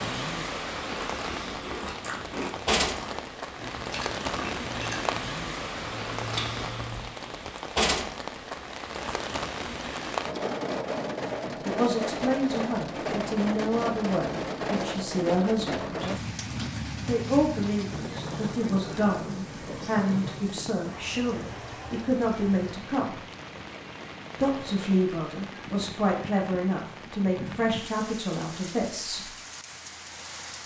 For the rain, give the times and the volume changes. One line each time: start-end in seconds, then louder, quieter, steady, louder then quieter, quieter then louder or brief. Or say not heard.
0.0-30.6 quieter.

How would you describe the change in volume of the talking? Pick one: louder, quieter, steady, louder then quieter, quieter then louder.
steady.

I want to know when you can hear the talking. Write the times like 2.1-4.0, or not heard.
11.7-16.1, 17.1-23.1, 24.4-29.3.